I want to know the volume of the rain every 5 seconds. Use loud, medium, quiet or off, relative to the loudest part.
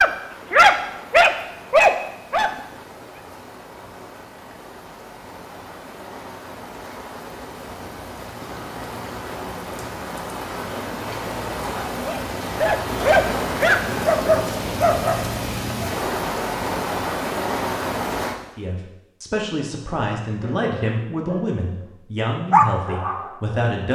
quiet, medium, loud, loud, off.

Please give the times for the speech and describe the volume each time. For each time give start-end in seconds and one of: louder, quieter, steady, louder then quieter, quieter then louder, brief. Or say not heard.
18.6-23.9 steady.